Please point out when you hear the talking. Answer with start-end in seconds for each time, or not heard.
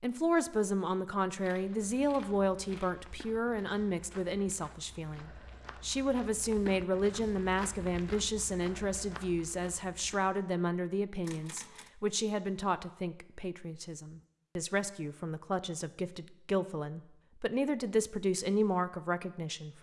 0.0-19.7.